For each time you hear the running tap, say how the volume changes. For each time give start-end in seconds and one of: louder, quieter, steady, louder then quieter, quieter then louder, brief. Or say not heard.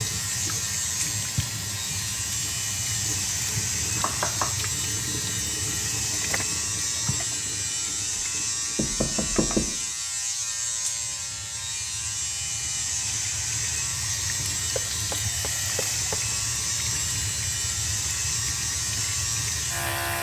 0.0-20.1 quieter then louder.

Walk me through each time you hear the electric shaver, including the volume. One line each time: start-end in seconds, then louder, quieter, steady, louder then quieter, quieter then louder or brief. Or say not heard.
0.0-20.1 steady.